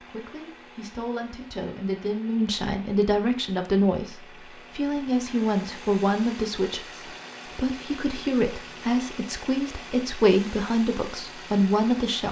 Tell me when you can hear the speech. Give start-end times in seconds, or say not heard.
0.1-12.2.